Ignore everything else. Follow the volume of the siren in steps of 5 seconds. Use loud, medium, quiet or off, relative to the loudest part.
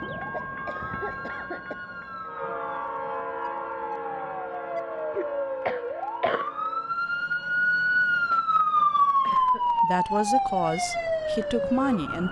quiet, loud, loud.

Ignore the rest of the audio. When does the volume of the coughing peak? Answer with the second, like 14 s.
6 s.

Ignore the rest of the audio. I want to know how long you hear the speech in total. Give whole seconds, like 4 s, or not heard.
3 s.